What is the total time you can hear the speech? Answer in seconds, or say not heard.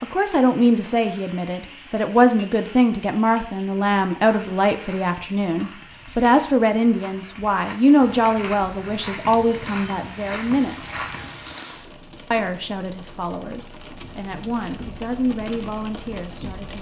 15 s.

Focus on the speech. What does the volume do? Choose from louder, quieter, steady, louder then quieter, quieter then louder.
quieter.